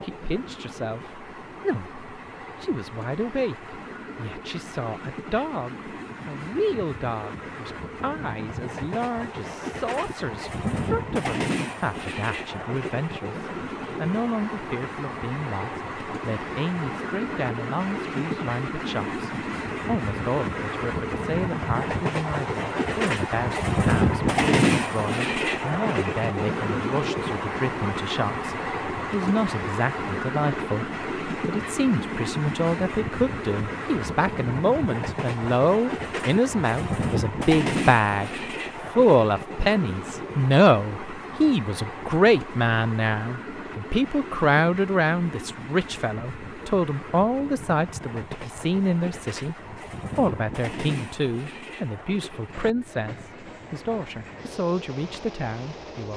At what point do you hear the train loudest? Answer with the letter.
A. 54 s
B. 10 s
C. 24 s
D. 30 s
C.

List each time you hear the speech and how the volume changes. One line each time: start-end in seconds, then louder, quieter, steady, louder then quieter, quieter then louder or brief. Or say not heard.
0.0-38.3 louder
39.0-56.1 quieter.